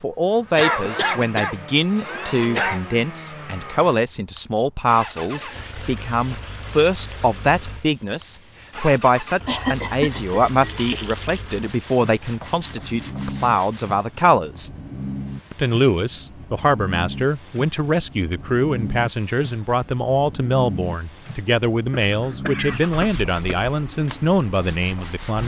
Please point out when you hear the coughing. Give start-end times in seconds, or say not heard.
0.6-2.8, 9.4-10.9, 21.9-23.7.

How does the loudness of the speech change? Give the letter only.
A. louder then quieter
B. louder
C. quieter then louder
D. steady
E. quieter
D.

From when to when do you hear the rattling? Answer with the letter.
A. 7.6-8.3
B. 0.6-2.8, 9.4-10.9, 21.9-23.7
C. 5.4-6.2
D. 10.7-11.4
D.